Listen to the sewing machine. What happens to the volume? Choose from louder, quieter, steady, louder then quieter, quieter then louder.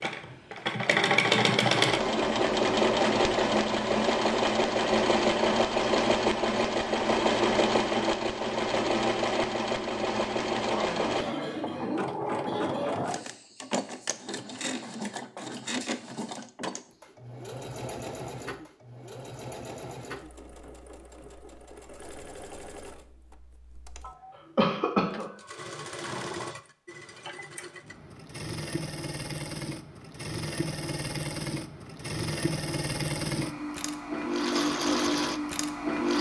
quieter then louder.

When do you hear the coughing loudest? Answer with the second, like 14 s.
25 s.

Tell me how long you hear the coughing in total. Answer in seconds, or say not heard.
3 s.